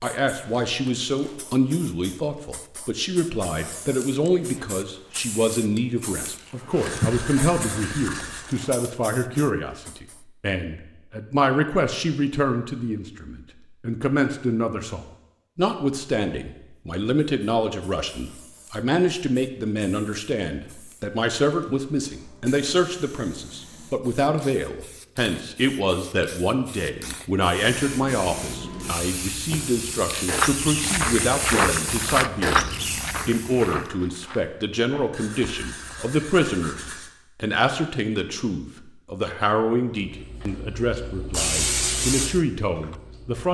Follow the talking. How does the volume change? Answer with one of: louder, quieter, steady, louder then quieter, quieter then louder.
steady.